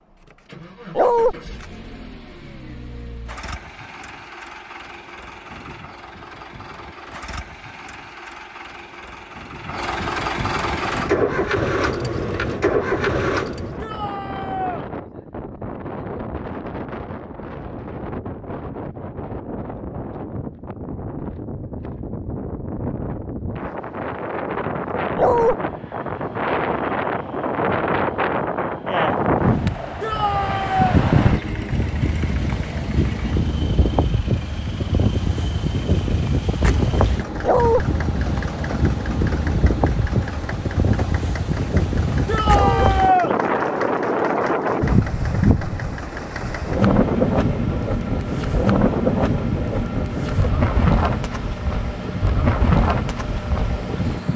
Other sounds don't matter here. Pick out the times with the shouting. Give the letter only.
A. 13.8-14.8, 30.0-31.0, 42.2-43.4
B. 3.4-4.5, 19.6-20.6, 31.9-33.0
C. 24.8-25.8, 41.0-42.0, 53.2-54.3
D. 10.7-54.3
A.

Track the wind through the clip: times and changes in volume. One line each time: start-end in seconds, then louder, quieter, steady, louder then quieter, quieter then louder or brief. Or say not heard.
10.7-54.3 louder.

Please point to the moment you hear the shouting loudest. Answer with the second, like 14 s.
43 s.